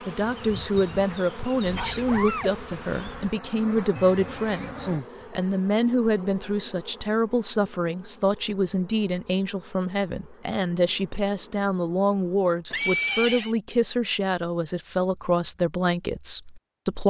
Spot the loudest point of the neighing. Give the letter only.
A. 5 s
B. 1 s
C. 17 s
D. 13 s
D.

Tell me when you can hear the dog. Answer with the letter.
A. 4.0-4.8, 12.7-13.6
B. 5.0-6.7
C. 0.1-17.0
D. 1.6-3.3
D.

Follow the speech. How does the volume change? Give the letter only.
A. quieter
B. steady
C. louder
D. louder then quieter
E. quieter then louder
B.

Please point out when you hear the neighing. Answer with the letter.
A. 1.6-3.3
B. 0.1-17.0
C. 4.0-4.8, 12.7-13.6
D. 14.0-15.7
C.